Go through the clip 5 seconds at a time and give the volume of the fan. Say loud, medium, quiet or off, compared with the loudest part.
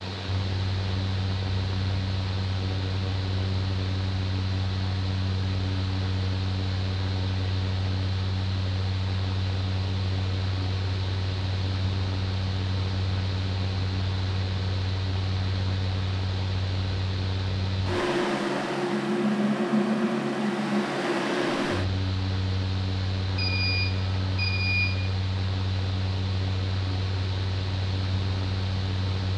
medium, medium, medium, loud, loud, medium.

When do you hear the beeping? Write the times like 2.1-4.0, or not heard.
23.4-24.9.